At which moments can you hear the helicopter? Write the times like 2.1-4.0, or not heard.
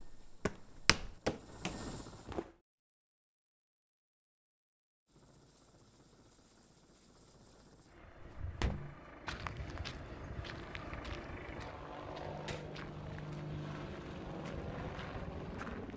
0.0-2.4, 5.0-15.9.